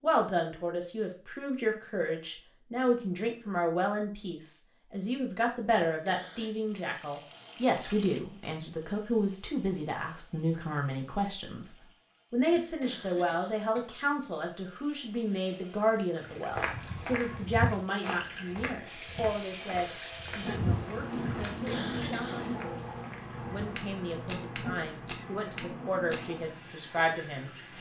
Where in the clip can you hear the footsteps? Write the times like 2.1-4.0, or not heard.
16.4-26.2.